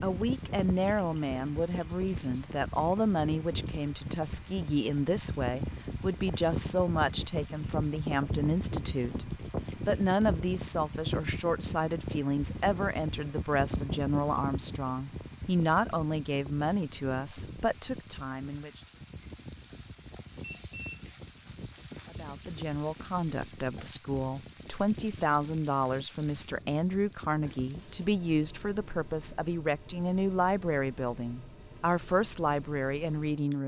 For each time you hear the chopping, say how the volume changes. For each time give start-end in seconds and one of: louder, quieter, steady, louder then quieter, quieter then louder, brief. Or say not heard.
not heard.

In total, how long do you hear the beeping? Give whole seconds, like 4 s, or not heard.
2 s.